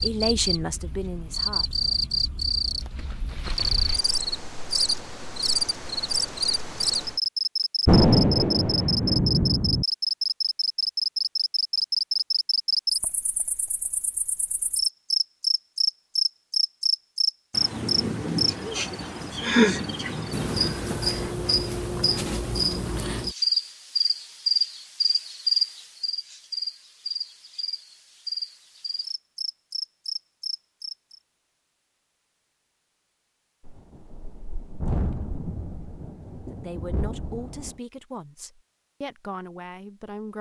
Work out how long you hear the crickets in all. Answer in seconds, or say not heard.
31 s.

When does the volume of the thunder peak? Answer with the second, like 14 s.
8 s.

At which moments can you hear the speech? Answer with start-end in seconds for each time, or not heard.
0.0-1.8, 36.4-40.3.